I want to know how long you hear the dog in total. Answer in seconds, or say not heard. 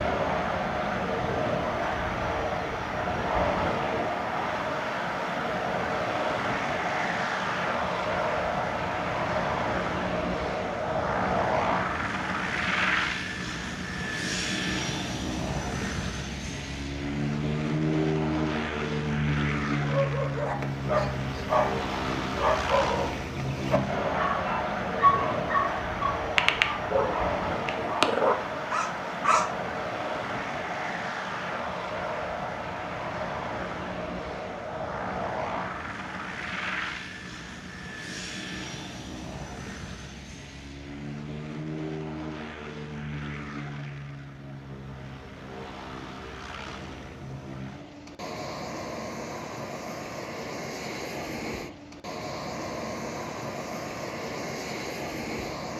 10 s.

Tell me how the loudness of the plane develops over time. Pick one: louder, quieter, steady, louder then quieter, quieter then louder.
quieter.